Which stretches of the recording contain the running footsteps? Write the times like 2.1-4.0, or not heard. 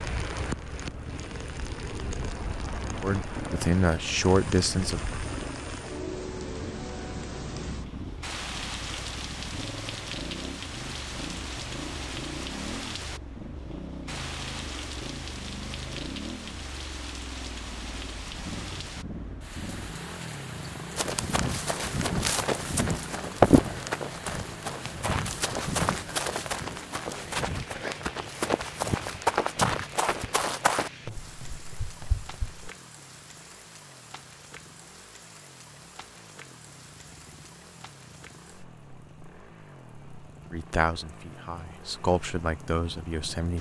20.9-32.7.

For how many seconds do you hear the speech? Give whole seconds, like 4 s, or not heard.
5 s.